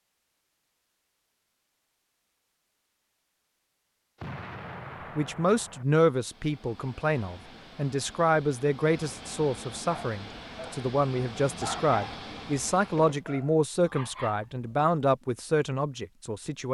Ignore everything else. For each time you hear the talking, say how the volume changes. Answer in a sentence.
You can hear the talking from 5.2 to 16.6 s, at a steady volume.